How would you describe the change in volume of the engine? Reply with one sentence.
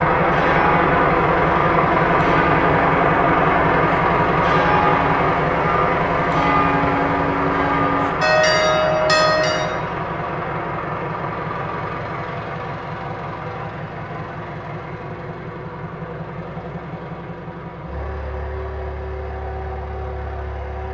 The loudness of the engine goes down.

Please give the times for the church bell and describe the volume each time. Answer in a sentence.
You can hear the church bell from 0.2 to 9.8 s, getting louder.